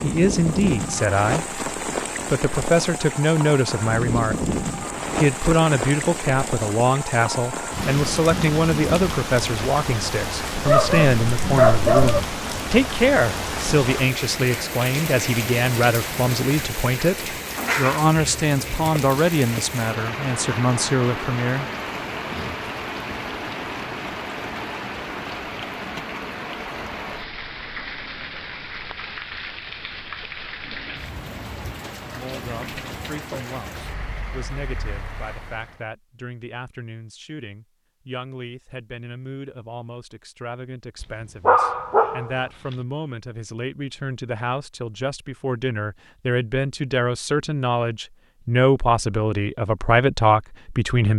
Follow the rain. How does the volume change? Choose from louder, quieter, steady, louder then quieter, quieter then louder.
quieter.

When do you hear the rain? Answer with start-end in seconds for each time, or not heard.
0.0-35.8.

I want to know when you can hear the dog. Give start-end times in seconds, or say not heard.
10.7-12.2, 41.0-42.4.